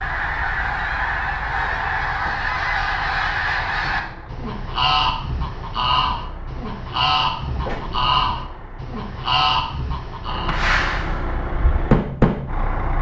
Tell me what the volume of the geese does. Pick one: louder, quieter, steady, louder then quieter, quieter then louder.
steady.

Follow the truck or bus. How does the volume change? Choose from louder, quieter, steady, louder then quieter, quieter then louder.
louder.